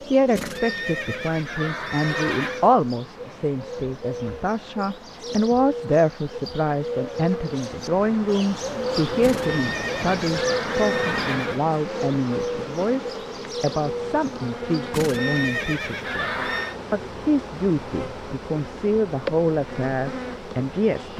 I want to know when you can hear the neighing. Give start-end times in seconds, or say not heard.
0.3-2.7, 9.2-11.6, 14.9-16.8.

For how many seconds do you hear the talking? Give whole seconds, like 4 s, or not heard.
21 s.